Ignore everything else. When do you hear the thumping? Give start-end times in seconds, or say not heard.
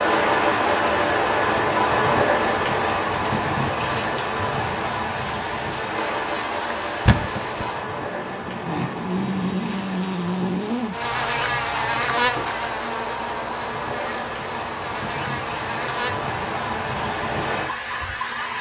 7.0-7.7.